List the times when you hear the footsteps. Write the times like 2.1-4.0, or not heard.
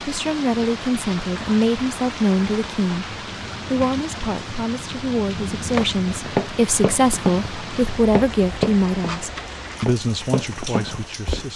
5.7-11.4.